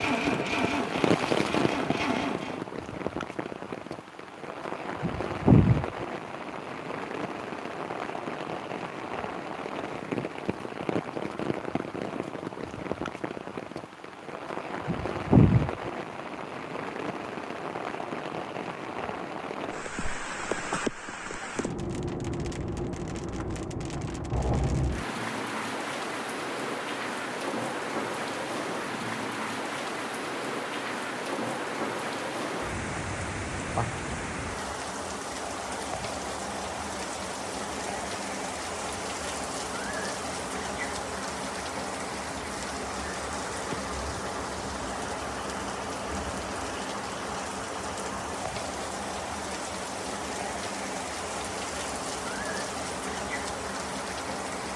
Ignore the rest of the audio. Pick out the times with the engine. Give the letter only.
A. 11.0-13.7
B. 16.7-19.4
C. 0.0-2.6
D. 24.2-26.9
C.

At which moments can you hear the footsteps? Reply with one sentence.
The footsteps can't be heard in this clip.